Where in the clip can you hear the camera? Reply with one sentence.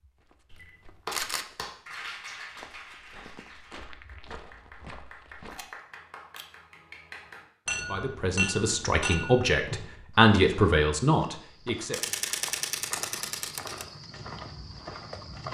The camera can be heard from 0.5 to 1.4 s, from 5.5 to 6.5 s and from 11.9 to 13.8 s.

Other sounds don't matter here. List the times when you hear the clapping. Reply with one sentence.
The clapping can be heard from 1.1 to 7.5 s.